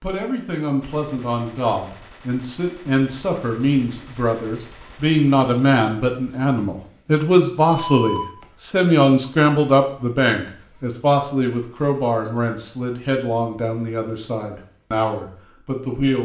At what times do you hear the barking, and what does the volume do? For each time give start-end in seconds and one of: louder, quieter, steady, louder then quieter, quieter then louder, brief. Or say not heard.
not heard.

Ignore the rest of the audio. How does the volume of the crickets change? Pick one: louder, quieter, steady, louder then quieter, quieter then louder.
quieter.